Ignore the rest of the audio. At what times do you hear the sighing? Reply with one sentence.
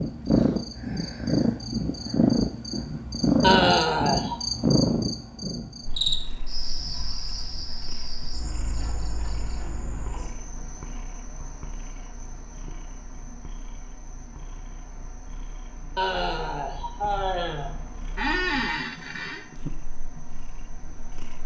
You can hear the sighing from 3.4 to 4.3 s and from 15.9 to 17.7 s.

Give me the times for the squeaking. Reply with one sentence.
You can hear the squeaking from 18.1 to 19.4 s.